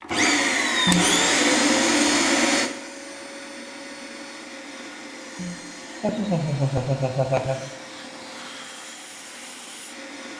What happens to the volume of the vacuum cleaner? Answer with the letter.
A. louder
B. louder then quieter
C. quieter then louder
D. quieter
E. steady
D.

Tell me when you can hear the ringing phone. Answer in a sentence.
You can't hear the ringing phone here.